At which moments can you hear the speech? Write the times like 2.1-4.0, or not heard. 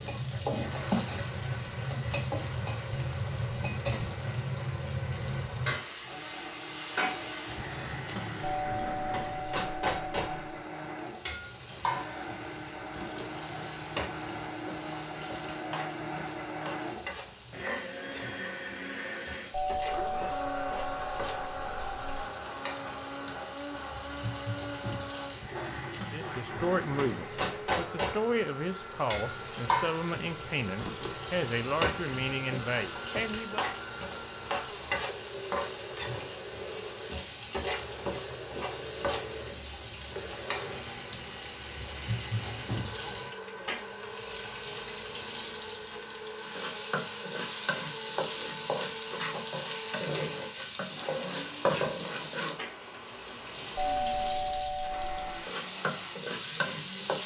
26.1-33.6.